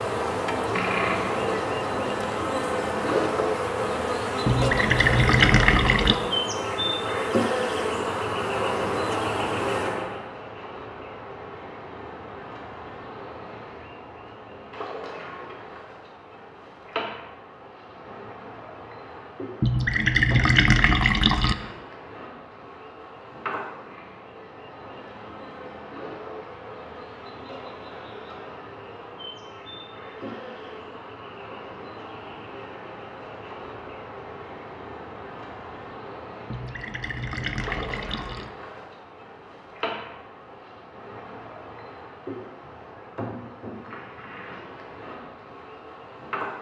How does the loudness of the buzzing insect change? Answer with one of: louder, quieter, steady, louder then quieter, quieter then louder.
quieter.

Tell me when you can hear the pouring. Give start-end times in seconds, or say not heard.
4.5-6.2, 19.6-21.6, 36.5-38.5.